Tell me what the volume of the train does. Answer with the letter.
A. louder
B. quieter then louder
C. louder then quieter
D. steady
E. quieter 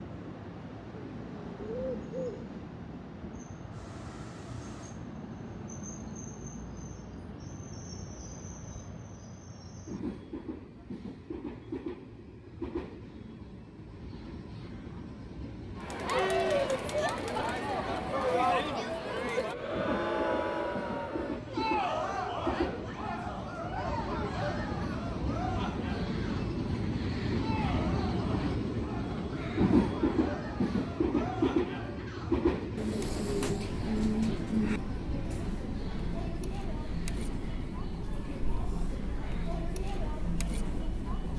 C.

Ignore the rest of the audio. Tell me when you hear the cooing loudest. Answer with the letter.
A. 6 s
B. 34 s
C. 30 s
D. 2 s
B.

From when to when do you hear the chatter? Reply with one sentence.
The chatter can be heard from 15.8 to 41.3 s.